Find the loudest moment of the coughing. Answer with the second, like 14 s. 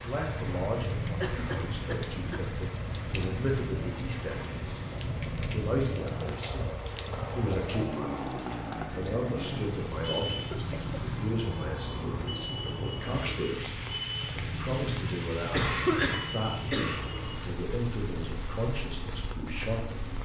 16 s.